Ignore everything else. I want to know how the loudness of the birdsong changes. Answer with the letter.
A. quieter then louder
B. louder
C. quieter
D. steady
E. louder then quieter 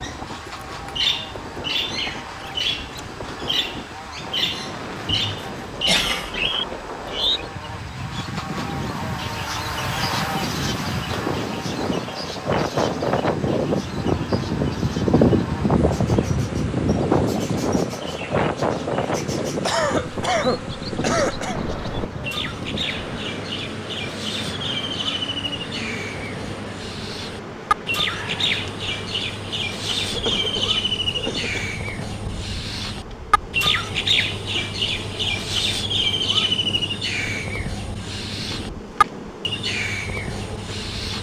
A.